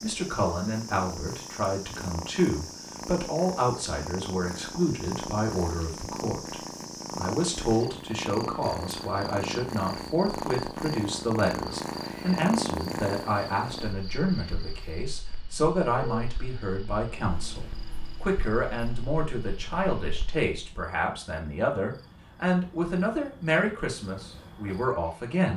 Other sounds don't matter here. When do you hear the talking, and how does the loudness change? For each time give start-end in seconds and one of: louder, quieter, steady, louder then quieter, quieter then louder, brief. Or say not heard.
0.0-25.5 steady.